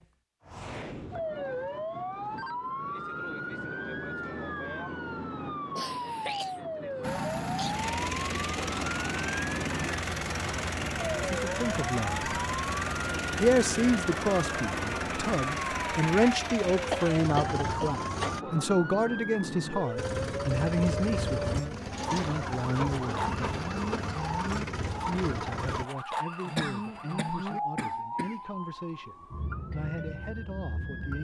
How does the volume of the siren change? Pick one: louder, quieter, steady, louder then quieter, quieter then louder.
steady.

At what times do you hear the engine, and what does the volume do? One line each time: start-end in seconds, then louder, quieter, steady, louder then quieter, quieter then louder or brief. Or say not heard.
7.0-18.4 steady
19.9-25.9 steady.